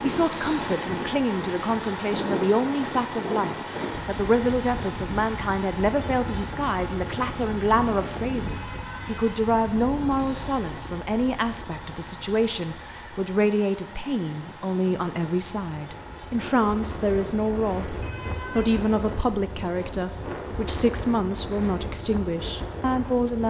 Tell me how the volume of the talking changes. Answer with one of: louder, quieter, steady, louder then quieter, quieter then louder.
steady.